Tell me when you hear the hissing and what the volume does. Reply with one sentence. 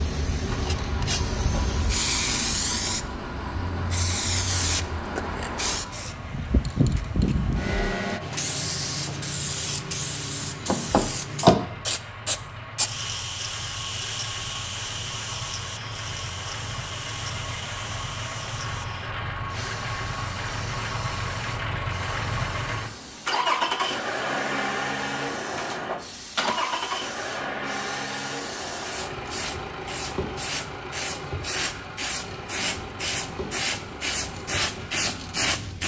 You can hear the hissing from 0.0 to 35.8 s, getting quieter then louder.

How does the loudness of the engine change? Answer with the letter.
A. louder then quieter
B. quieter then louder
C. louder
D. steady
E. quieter
A.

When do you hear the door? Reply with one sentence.
The door can be heard from 10.7 to 11.7 s and from 25.6 to 26.6 s.